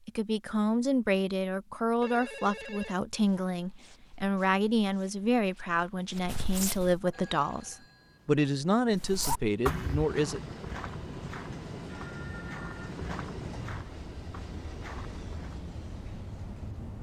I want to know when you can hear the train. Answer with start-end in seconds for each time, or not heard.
7.0-16.9.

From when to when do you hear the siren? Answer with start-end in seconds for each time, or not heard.
not heard.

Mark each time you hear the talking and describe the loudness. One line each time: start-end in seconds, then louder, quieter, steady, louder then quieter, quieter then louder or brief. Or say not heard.
0.1-10.4 steady.